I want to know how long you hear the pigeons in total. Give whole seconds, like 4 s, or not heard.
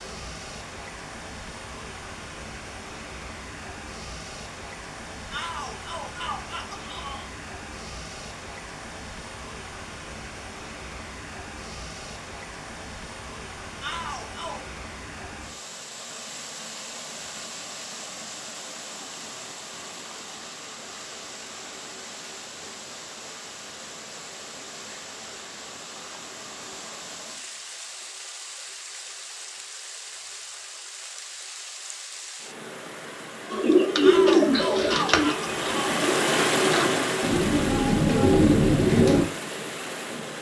6 s.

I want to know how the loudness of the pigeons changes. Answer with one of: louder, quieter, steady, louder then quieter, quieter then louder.
quieter then louder.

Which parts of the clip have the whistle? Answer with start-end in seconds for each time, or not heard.
not heard.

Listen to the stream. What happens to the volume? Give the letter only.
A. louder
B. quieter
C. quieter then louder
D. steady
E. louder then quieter
A.